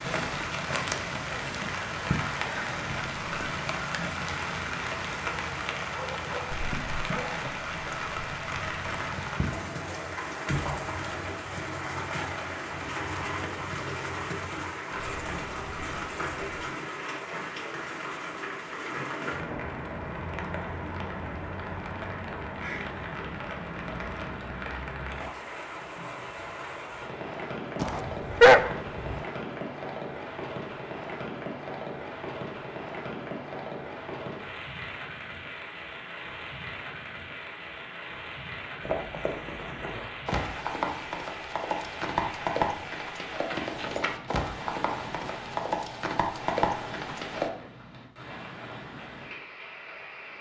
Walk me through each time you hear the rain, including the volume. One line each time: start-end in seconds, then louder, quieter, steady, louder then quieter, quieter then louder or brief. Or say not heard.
0.0-50.3 quieter.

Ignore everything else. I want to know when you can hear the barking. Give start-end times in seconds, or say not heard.
5.9-7.5, 27.8-29.2.